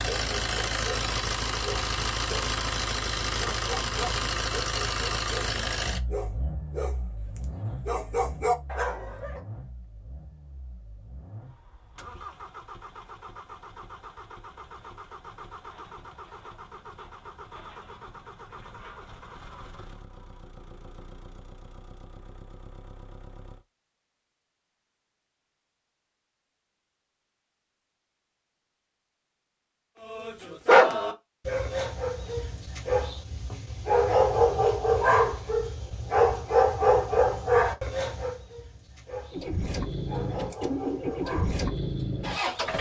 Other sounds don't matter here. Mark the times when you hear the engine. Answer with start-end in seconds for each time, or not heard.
0.0-23.6, 39.3-42.7.